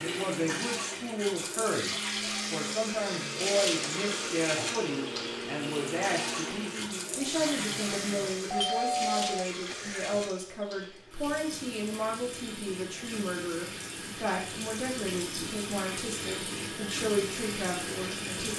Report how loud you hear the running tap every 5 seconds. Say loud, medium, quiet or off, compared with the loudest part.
loud, loud, medium, loud.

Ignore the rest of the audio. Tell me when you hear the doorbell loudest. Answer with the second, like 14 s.
9 s.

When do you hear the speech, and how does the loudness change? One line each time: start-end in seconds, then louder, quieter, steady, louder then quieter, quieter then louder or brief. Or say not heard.
0.0-18.5 steady.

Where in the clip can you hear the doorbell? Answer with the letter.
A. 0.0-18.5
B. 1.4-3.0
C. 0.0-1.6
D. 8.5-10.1
D.